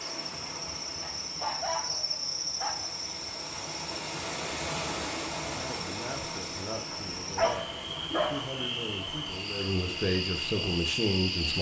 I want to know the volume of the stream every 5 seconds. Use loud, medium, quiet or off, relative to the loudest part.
loud, loud, medium.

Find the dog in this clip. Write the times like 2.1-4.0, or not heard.
1.0-2.9, 6.9-8.4.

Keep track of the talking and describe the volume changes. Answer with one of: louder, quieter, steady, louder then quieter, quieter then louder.
louder.